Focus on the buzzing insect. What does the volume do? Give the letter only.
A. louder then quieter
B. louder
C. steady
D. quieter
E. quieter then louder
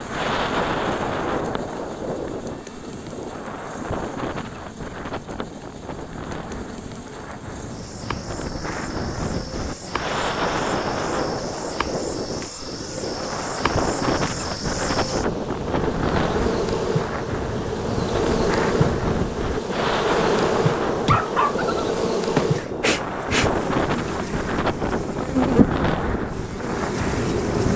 B.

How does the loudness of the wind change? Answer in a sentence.
The volume of the wind stays about the same.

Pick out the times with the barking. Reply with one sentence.
You can hear the barking from 21.1 to 22.6 s.